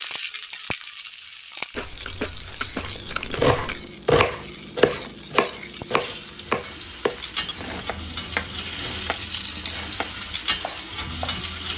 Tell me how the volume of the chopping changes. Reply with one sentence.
The volume of the chopping goes down.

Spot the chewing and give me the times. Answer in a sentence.
The chewing can be heard from 1.7 to 3.9 s and from 7.4 to 9.0 s.